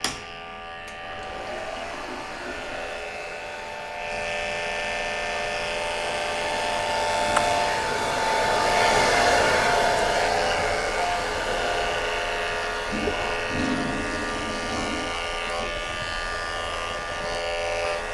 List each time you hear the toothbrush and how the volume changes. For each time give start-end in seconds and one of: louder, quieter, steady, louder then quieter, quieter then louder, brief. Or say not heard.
not heard.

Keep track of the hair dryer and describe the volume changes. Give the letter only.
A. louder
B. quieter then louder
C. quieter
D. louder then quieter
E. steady
D.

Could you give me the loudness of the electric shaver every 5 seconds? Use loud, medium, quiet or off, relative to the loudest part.
medium, loud, loud, loud.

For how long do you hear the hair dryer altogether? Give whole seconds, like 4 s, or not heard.
18 s.